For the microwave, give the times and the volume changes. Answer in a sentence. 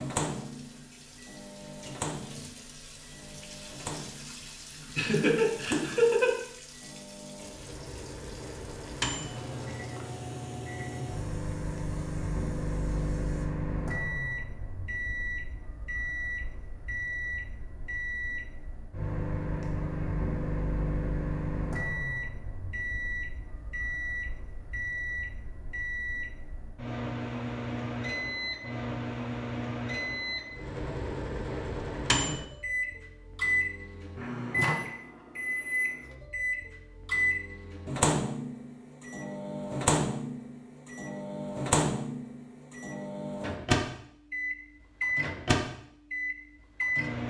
The microwave can be heard from 0.0 to 47.2 s, getting louder.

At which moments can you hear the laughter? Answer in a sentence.
You can hear the laughter from 5.0 to 6.3 s.